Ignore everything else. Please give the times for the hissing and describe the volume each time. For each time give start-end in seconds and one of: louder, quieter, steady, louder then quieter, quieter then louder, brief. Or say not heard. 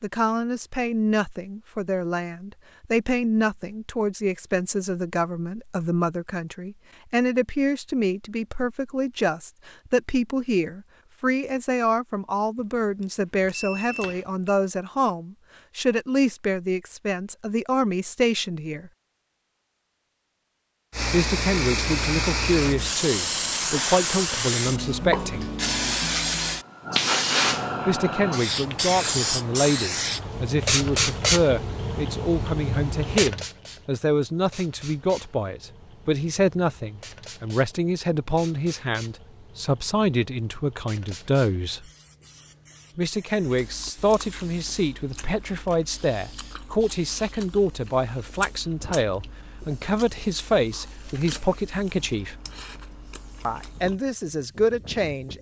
20.9-55.3 quieter.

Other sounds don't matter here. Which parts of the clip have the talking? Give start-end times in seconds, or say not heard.
0.0-18.9, 21.1-25.5, 27.9-41.8, 43.0-52.4, 53.5-55.3.